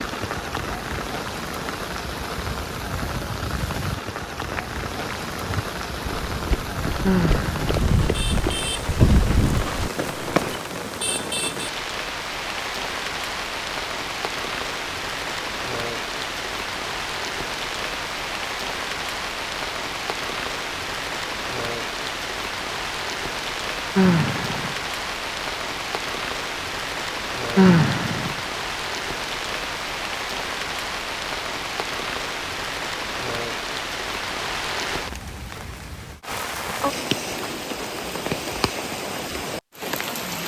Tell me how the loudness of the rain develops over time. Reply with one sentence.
The loudness of the rain stays about the same.